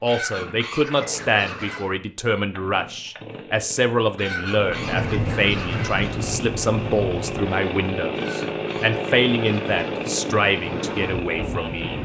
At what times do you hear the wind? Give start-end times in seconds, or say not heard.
4.5-12.0.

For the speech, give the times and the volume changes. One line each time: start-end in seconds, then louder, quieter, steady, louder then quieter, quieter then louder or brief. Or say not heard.
0.0-12.0 steady.